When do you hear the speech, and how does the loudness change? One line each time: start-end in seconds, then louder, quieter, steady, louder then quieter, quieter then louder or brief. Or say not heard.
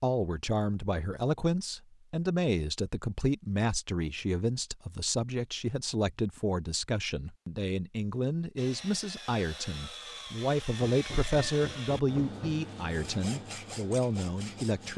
0.0-14.9 steady.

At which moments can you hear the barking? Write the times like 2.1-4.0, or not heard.
not heard.